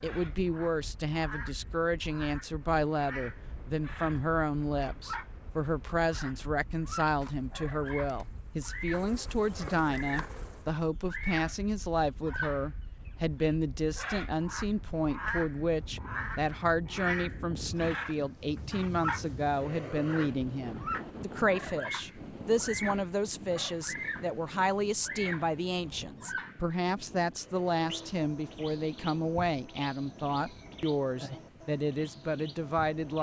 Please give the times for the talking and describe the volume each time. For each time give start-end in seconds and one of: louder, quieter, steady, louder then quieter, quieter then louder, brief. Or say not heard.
0.0-33.1 steady.